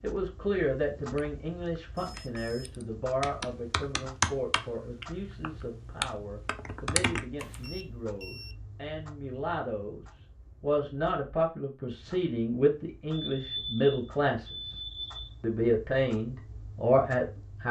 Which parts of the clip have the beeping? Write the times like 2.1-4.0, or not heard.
1.9-2.8, 7.6-8.6, 13.1-15.3.